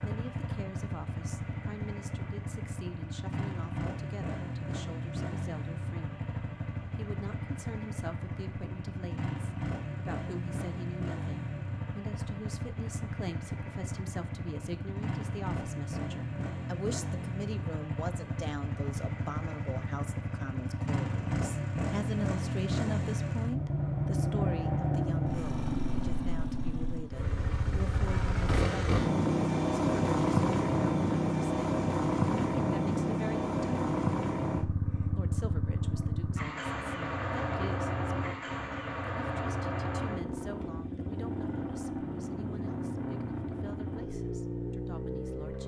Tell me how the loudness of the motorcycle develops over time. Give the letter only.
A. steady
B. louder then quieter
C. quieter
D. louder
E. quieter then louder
B.